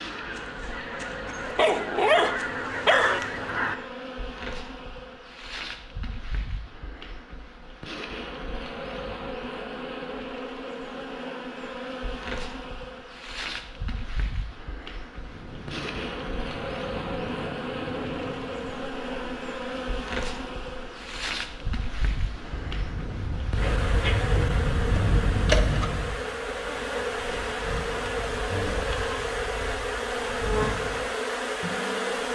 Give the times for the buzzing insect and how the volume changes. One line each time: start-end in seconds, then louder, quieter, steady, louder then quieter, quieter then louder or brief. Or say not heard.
0.0-32.3 louder.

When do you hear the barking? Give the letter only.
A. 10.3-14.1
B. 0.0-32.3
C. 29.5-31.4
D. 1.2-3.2
D.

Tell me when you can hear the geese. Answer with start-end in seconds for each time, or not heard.
0.0-3.8.